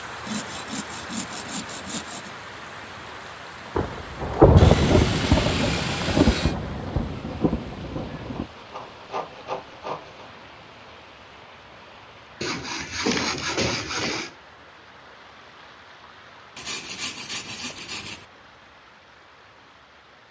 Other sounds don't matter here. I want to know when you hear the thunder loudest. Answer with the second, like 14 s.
5 s.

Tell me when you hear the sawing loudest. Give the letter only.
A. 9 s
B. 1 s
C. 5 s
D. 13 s
D.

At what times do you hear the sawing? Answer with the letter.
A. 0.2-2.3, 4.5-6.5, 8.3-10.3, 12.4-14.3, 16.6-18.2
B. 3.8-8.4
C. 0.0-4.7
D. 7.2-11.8
A.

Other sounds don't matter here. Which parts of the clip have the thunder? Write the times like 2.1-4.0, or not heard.
3.8-8.4.